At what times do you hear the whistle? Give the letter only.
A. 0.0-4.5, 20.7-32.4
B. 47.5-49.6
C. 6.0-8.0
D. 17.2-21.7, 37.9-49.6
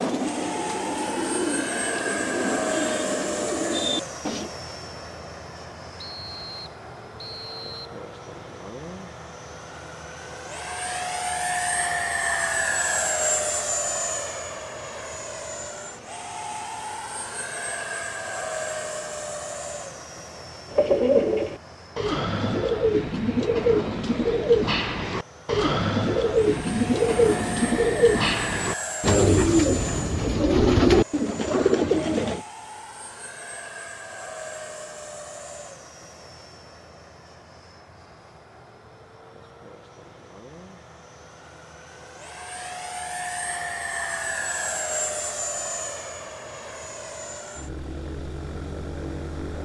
C.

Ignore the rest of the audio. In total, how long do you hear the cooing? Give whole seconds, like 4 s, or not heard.
16 s.